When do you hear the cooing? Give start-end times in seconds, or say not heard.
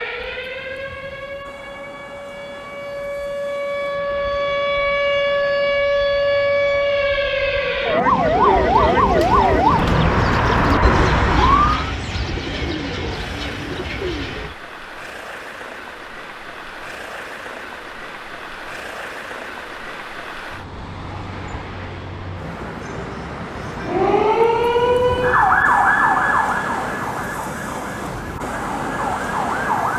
8.0-14.6.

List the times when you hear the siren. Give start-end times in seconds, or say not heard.
0.0-11.9, 23.8-29.9.